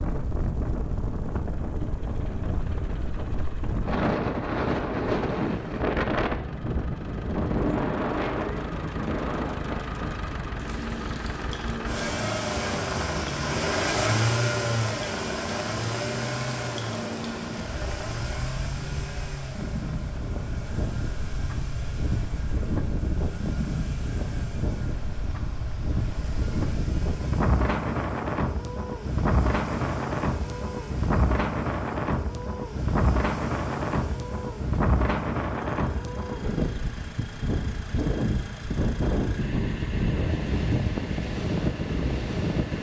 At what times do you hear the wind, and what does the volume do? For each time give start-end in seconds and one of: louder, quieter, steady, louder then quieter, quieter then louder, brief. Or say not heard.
0.0-42.7 quieter then louder.